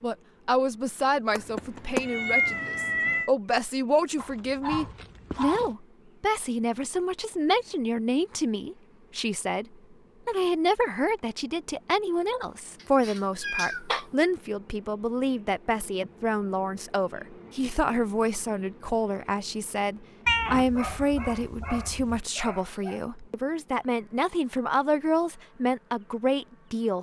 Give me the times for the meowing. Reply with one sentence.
You can hear the meowing from 1.4 to 3.3 s, from 13.0 to 14.1 s and from 20.2 to 22.2 s.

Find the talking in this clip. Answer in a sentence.
You can hear the talking from 0.0 to 9.7 s and from 10.2 to 26.9 s.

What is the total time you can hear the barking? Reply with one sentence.
You can hear the barking for 4 seconds altogether.